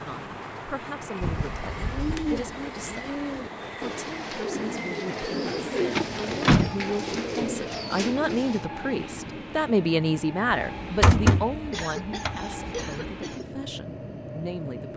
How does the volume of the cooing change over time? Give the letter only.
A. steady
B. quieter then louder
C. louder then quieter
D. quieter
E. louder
A.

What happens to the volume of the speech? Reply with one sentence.
The volume of the speech goes up, then down.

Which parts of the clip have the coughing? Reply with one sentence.
The coughing can be heard from 5.0 to 5.8 s and from 11.7 to 13.4 s.